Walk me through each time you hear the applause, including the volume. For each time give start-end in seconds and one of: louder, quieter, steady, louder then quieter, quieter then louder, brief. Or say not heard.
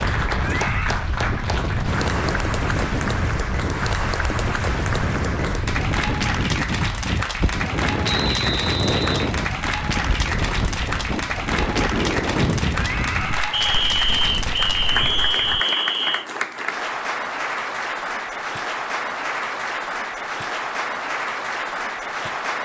0.0-22.6 steady.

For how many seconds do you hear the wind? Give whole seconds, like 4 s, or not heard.
16 s.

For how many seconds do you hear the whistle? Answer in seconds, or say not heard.
4 s.